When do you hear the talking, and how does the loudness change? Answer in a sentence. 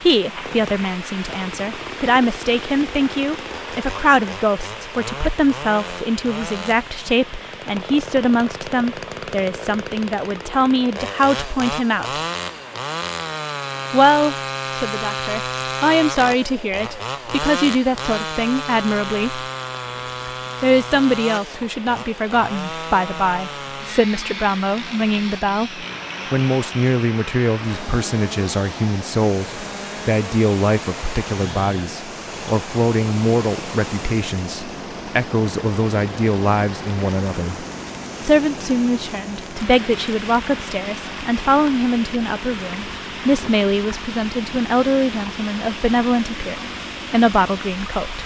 The talking can be heard from 0.0 to 12.2 s, at a steady volume; from 13.9 to 19.4 s, getting louder; and from 20.6 to 48.2 s, at a steady volume.